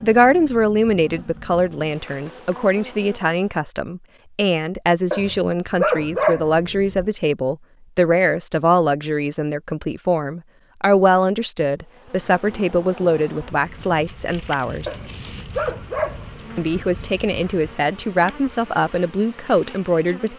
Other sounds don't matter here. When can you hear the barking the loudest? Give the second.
6 s.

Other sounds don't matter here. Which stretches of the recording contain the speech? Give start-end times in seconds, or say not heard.
0.0-15.0, 16.6-20.3.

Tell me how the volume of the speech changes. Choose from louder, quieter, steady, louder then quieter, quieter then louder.
steady.